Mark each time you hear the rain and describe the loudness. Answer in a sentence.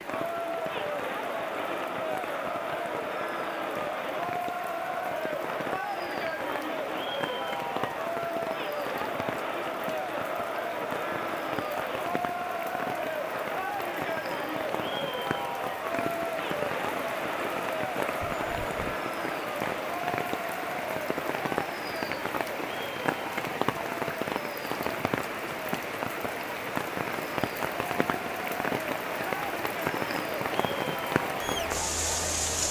You can hear the rain from 0.0 to 32.6 s, getting louder.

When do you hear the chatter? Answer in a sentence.
You can hear the chatter from 0.0 to 32.6 s.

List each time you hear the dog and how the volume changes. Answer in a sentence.
The dog can't be heard in this clip.